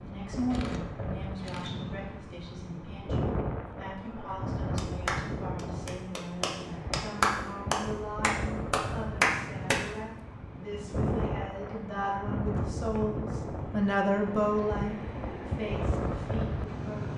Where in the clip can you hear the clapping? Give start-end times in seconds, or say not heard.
4.8-9.8.